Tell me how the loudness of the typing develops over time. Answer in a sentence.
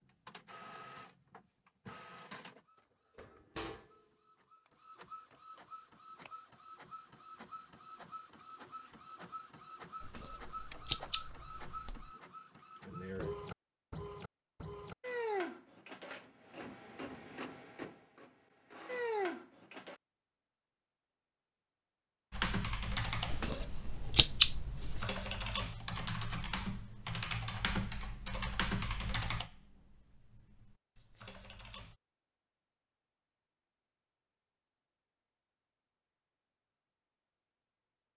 The volume of the typing goes down.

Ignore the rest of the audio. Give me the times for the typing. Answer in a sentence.
You can hear the typing from 22.3 to 31.9 s.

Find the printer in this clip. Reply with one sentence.
You can hear the printer from 0.0 to 19.9 s.